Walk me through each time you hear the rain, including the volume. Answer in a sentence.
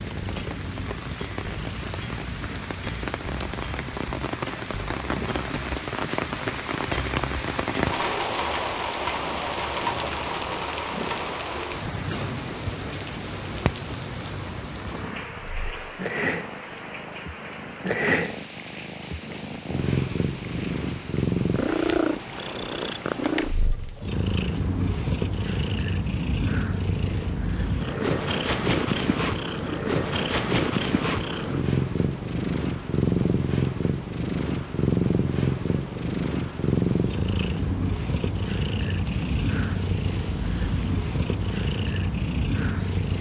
The rain can be heard from 0.0 to 43.1 s, getting quieter.